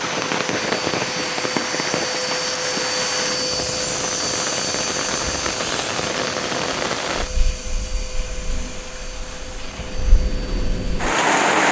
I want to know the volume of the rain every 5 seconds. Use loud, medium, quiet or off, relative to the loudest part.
medium, medium, loud.